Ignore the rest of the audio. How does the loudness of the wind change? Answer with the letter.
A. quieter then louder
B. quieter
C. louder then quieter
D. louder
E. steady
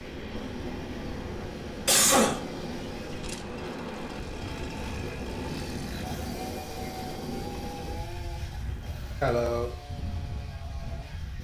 B.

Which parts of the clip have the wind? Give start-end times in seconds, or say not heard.
0.0-11.3.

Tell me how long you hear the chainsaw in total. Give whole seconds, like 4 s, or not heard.
11 s.